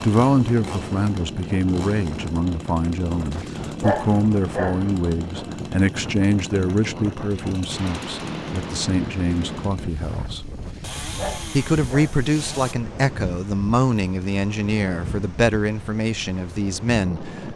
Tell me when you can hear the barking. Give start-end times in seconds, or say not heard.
3.3-4.8, 10.4-12.2.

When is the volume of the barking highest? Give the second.
4 s.